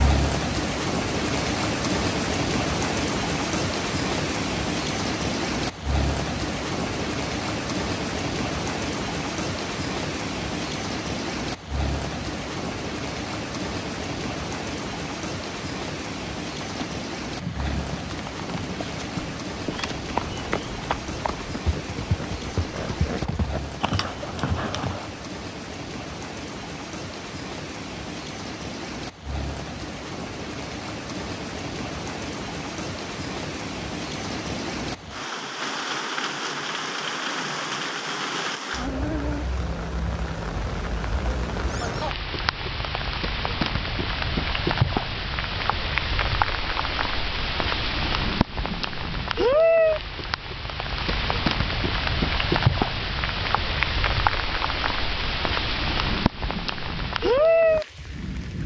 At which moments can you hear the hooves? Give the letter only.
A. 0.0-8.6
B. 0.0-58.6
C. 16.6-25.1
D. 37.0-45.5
C.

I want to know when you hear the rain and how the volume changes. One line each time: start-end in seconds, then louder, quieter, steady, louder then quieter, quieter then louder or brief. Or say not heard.
0.0-58.6 quieter then louder.